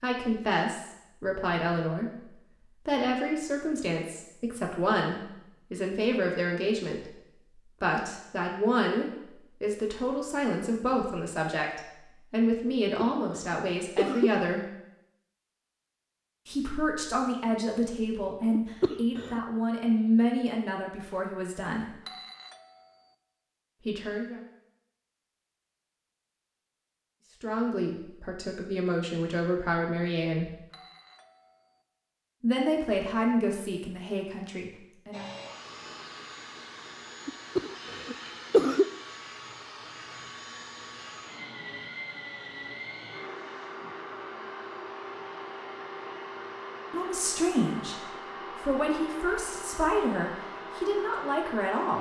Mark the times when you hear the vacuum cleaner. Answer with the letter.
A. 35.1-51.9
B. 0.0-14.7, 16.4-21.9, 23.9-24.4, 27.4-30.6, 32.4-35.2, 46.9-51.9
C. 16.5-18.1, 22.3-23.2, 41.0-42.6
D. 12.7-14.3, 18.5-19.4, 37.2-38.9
A.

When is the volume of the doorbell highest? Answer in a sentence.
The volume of the doorbell peaks at 22 seconds.